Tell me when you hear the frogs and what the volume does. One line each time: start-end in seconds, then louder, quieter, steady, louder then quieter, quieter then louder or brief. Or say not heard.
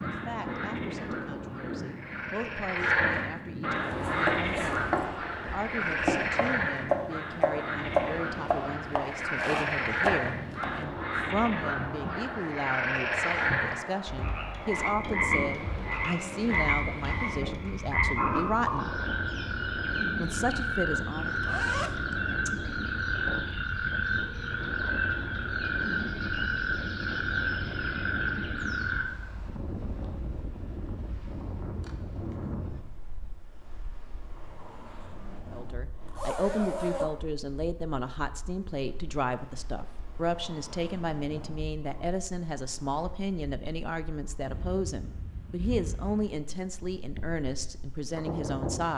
0.0-29.1 steady.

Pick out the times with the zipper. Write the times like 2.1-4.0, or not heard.
3.8-5.0, 21.2-22.5, 36.1-37.1.